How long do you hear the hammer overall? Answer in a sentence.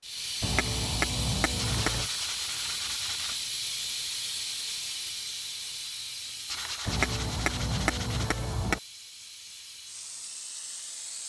You can hear the hammer for 4 seconds altogether.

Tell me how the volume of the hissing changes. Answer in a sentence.
The loudness of the hissing goes down.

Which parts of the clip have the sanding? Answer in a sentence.
The sanding can be heard from 1.6 to 3.5 s and from 6.5 to 8.3 s.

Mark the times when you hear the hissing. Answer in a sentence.
The hissing can be heard from 0.0 to 11.2 s.